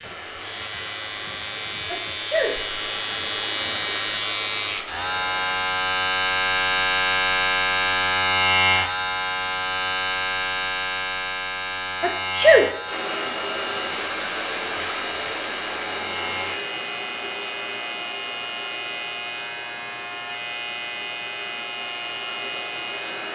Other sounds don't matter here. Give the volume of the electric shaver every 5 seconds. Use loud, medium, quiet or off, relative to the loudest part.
medium, loud, medium, medium, medium.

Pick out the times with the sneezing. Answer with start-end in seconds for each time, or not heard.
1.9-2.5, 12.0-12.7.